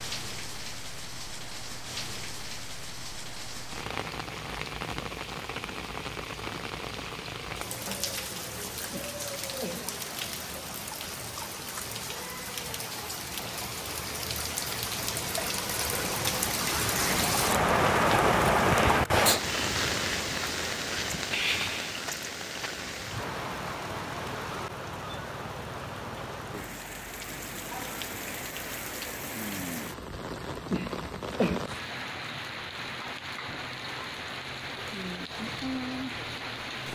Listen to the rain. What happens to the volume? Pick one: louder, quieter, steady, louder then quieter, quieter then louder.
louder then quieter.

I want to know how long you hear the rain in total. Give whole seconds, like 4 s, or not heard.
37 s.